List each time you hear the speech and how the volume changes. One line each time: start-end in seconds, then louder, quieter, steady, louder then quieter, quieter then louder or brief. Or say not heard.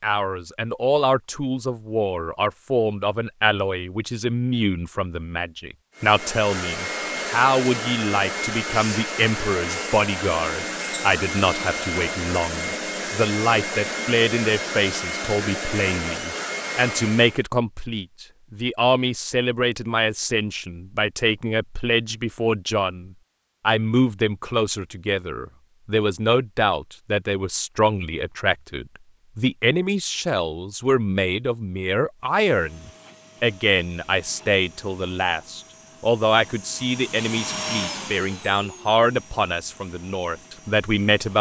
0.0-41.3 steady.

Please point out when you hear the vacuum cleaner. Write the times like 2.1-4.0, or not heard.
6.0-17.4, 32.2-41.3.